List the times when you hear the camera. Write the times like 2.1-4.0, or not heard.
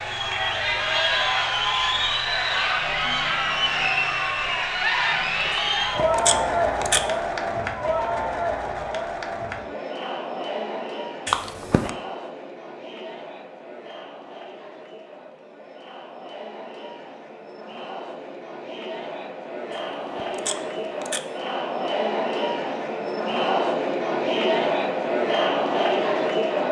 5.5-7.0, 11.2-11.9, 19.7-21.2.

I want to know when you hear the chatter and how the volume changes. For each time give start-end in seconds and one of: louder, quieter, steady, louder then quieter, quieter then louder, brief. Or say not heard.
0.0-26.6 quieter then louder.